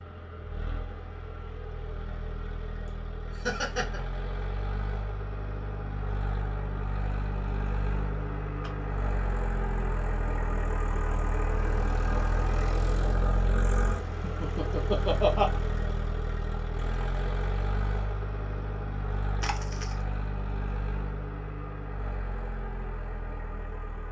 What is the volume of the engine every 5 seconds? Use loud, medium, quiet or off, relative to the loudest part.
medium, loud, loud, loud, medium.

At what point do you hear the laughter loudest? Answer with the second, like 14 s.
15 s.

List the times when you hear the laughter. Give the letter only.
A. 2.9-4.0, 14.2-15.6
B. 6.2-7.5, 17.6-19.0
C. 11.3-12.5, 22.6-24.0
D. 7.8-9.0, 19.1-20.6
A.